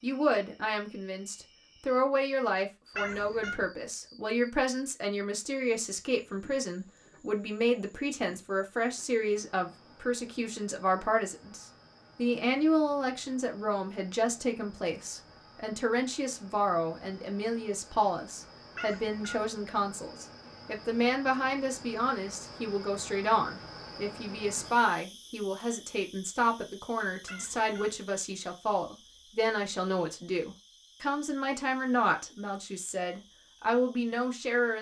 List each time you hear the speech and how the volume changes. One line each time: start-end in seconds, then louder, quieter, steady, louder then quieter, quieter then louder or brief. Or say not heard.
0.0-34.7 steady.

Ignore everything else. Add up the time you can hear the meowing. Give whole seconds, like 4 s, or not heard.
2 s.